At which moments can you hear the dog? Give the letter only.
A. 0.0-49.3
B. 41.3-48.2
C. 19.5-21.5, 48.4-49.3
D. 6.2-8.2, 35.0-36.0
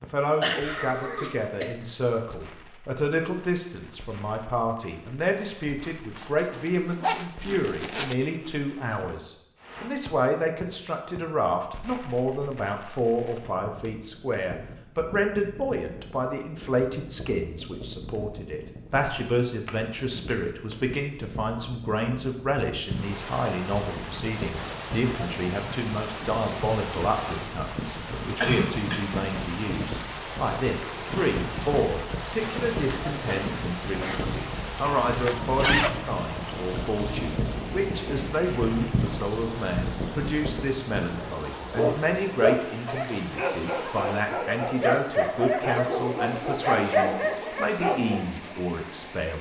B.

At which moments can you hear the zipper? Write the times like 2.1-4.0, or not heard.
6.2-8.2, 35.0-36.0.